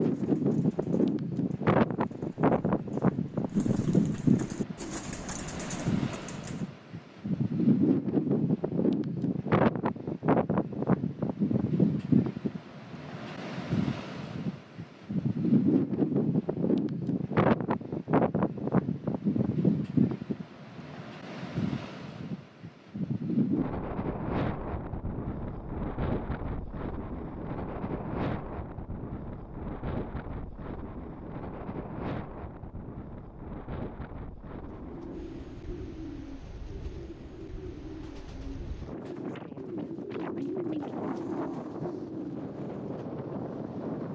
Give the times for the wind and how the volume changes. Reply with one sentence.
You can hear the wind from 0.0 to 44.1 s, getting quieter.